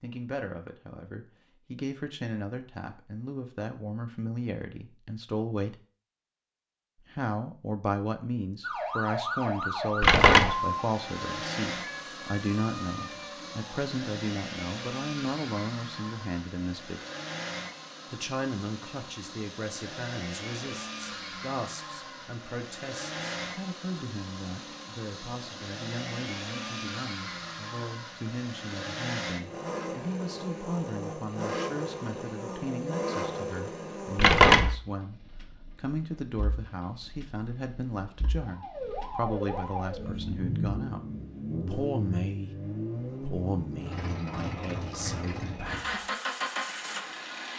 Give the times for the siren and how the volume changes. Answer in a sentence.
The siren can be heard from 8.6 to 13.8 s, getting quieter; and briefly from 38.4 to 40.1 s.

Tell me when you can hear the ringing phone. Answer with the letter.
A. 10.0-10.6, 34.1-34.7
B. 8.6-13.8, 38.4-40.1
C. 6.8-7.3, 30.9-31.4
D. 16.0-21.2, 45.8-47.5
A.